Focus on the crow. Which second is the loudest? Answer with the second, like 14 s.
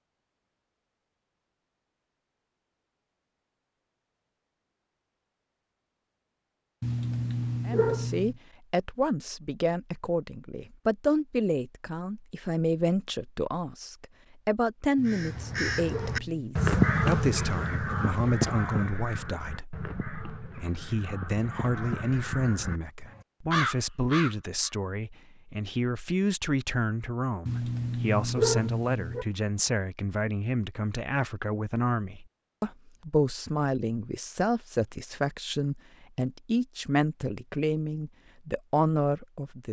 17 s.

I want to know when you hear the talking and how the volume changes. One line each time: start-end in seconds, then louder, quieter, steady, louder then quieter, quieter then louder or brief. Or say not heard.
7.7-39.6 steady.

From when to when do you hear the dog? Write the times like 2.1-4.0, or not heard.
6.8-8.3, 14.9-16.6, 27.4-29.2.